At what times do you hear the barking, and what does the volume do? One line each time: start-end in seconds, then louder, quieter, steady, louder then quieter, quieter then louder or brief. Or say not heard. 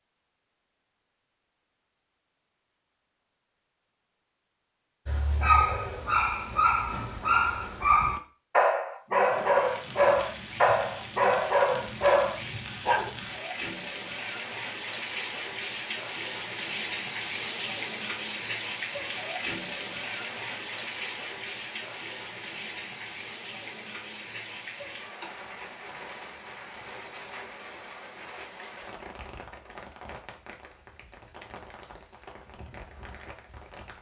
5.0-13.1 steady.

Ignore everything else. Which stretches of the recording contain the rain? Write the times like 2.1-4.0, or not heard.
9.2-33.9.